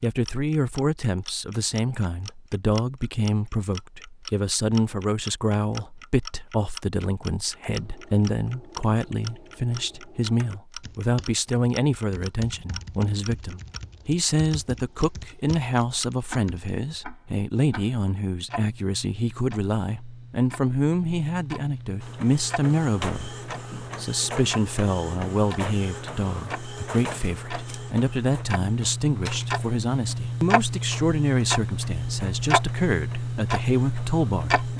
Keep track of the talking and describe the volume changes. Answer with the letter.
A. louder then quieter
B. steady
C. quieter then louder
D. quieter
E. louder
B.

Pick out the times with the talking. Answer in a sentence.
You can hear the talking from 0.0 to 34.7 s.